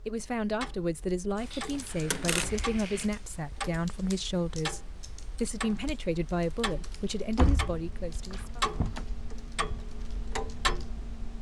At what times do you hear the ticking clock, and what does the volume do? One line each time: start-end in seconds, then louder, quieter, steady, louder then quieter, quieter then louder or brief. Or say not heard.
0.0-11.3 louder.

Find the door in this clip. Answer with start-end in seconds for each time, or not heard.
2.1-2.7, 7.3-9.1.